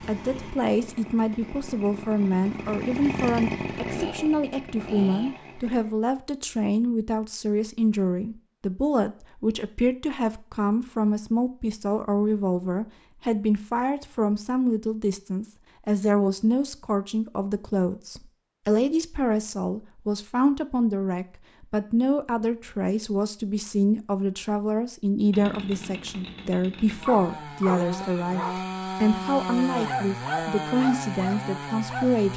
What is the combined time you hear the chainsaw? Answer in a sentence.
The chainsaw can be heard for 13 seconds in total.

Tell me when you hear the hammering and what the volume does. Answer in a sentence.
The hammering can't be heard in this clip.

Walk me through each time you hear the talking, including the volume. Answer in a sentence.
The talking can be heard from 0.1 to 32.3 s, at a steady volume.